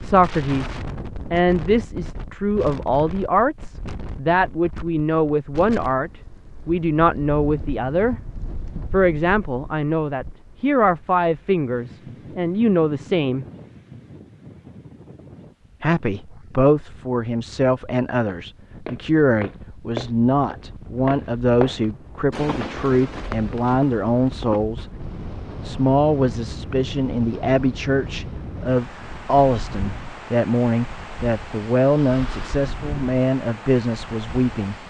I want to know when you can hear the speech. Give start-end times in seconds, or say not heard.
0.0-8.2, 8.9-13.4, 15.8-24.9, 25.6-34.8.